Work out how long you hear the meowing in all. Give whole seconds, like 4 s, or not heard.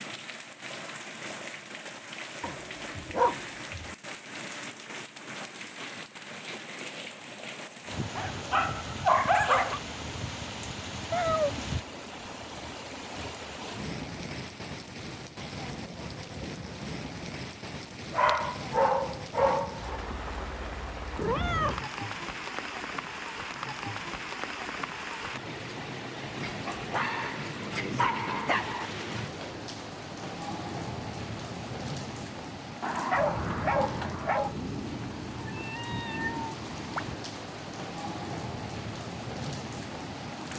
3 s.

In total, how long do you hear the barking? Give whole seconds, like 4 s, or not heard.
9 s.